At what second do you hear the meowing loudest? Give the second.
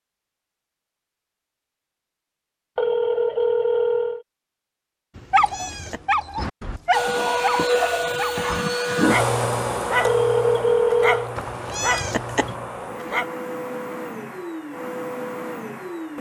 12 s.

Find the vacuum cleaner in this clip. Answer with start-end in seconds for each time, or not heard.
6.9-16.1.